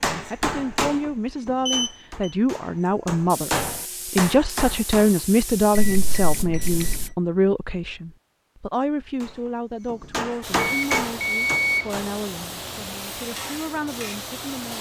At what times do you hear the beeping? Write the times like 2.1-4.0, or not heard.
1.6-2.4, 5.8-7.1, 10.6-11.9.